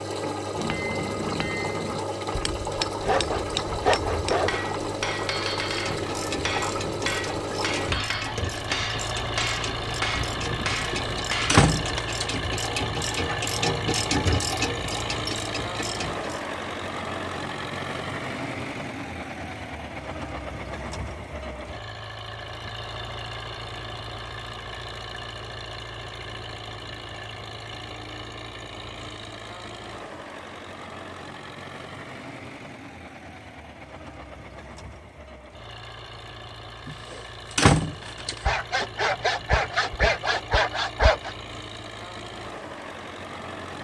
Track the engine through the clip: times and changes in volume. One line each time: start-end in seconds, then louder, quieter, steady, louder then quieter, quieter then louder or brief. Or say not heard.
0.0-43.7 quieter.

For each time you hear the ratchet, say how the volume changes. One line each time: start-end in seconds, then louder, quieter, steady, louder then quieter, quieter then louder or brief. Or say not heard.
5.7-16.4 louder.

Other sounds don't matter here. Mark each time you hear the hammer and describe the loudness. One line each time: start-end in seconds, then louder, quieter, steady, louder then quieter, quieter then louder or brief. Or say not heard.
0.6-12.0 steady.